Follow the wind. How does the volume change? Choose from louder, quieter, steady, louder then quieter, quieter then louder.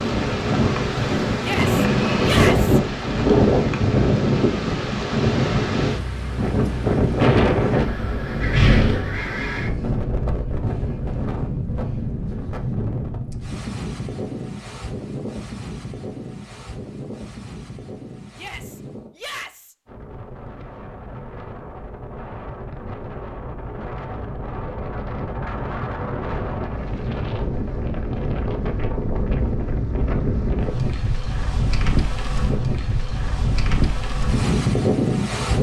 quieter then louder.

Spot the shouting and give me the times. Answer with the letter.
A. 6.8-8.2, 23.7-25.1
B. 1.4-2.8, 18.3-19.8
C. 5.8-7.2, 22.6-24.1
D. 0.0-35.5
B.